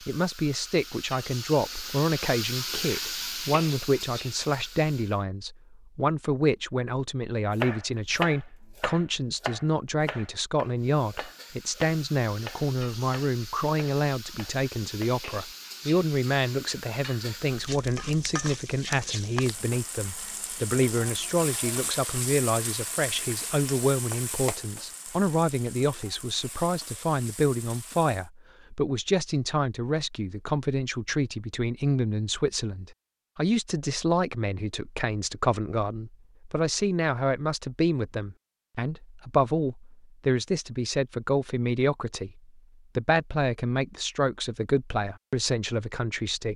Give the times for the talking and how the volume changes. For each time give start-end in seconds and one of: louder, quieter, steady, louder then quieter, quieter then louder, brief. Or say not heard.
0.1-46.5 steady.